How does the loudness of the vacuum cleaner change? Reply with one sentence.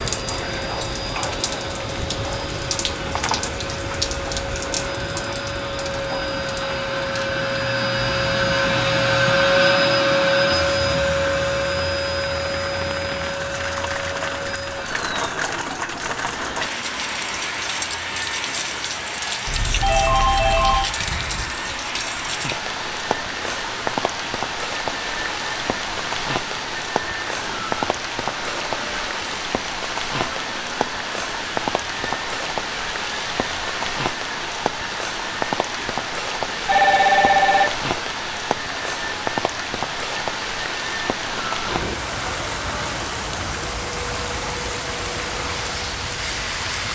The volume of the vacuum cleaner goes down.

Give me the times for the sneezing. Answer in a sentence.
The sneezing can't be heard in this clip.